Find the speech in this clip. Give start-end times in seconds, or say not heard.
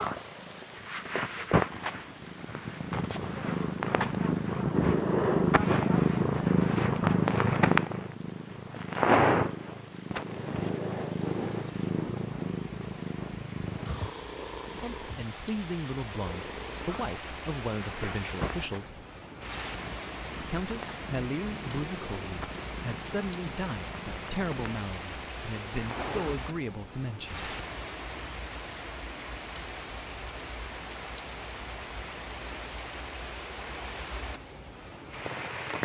14.8-19.1, 20.4-27.4.